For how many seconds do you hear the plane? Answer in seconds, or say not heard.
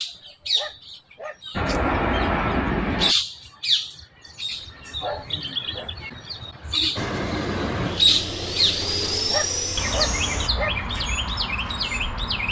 5 s.